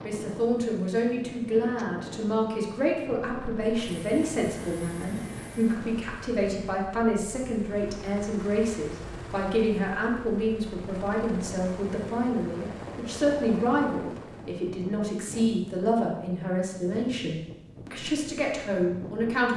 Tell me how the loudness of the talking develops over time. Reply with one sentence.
The loudness of the talking stays about the same.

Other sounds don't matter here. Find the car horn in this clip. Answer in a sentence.
You can't hear the car horn here.